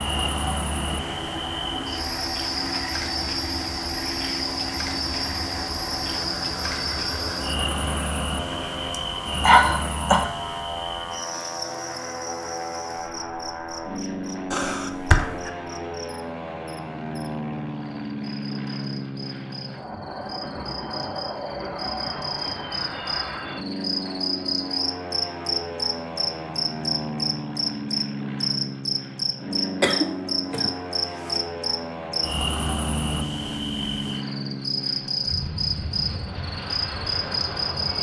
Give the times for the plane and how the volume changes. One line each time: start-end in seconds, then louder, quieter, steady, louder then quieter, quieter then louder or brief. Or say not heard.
0.0-37.9 steady.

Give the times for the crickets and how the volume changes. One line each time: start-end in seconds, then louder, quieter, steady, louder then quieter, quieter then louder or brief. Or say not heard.
0.0-37.9 quieter then louder.